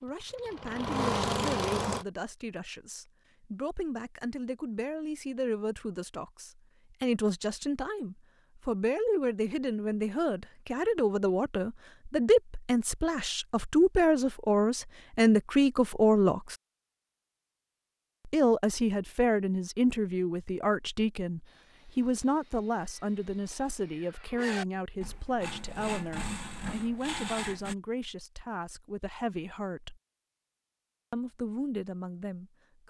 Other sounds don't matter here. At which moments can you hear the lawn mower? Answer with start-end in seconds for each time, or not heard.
0.0-2.0.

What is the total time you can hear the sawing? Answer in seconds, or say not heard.
6 s.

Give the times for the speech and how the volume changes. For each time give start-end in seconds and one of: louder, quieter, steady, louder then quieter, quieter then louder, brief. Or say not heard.
0.0-16.6 louder
18.2-30.0 quieter
31.1-32.8 brief.